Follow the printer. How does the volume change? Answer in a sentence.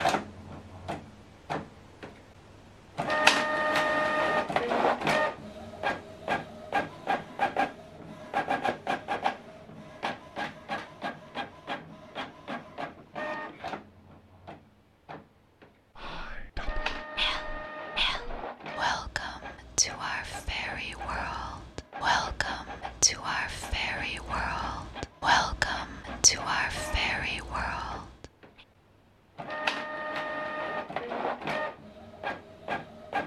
The loudness of the printer goes down, then up.